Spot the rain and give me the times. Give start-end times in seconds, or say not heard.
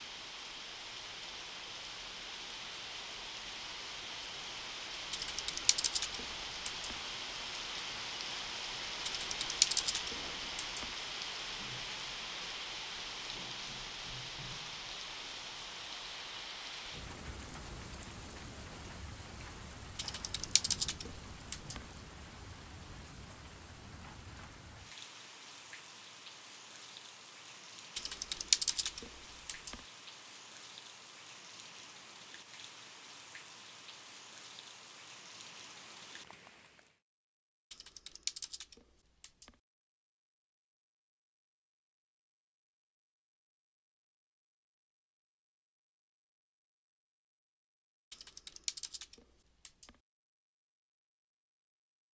0.0-37.0.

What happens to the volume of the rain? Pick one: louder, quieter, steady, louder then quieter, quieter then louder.
quieter.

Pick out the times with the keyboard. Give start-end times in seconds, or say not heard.
5.1-7.0, 9.1-10.8, 19.9-21.8, 27.9-29.8, 37.7-39.5, 48.1-49.9.